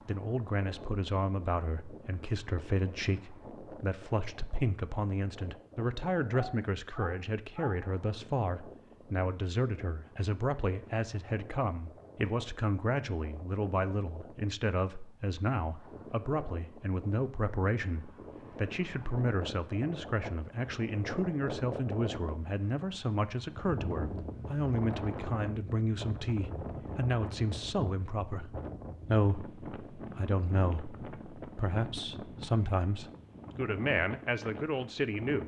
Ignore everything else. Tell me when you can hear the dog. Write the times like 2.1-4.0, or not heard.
6.3-8.0.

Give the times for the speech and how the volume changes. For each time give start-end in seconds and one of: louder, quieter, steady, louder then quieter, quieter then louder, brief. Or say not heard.
0.1-35.4 steady.